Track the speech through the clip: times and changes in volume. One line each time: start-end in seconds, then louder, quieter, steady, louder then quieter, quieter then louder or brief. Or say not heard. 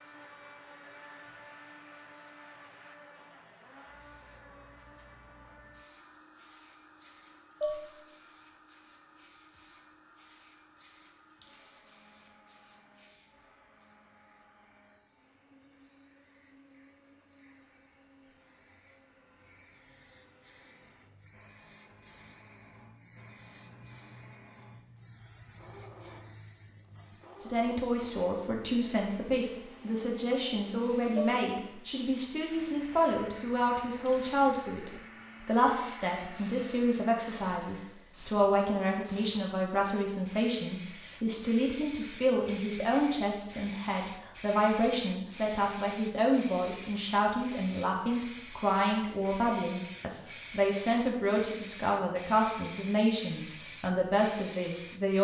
27.4-55.1 steady.